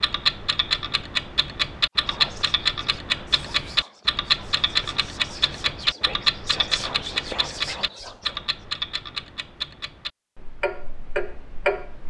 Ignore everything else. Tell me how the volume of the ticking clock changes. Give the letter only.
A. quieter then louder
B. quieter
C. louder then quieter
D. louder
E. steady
B.